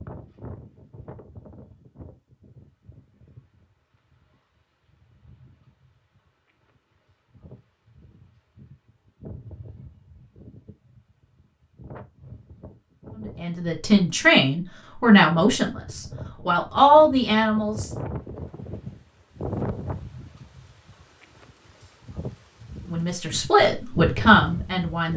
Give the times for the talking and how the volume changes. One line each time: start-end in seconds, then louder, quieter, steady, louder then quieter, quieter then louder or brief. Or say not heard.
13.4-17.9 quieter then louder
22.9-25.1 brief.